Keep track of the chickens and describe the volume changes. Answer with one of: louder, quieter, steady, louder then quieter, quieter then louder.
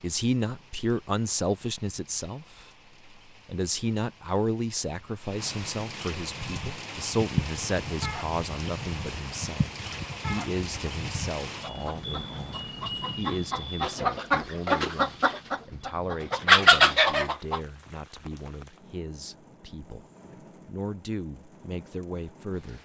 louder.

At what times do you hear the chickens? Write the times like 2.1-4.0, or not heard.
6.3-17.6.